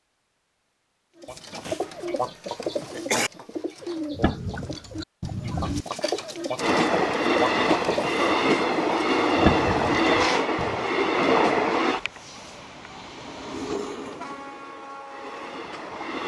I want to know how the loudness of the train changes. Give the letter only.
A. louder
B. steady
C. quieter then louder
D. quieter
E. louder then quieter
D.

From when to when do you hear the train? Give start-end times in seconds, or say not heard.
6.5-16.2.